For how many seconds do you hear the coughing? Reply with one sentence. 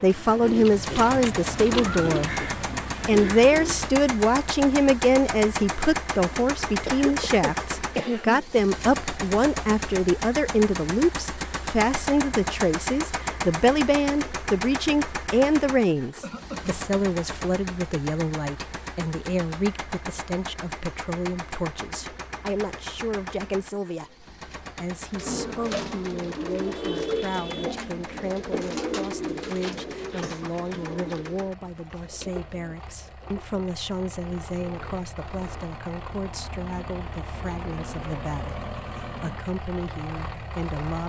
You can hear the coughing for 3 seconds altogether.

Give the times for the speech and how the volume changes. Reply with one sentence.
The speech can be heard from 0.0 to 41.0 s, getting quieter.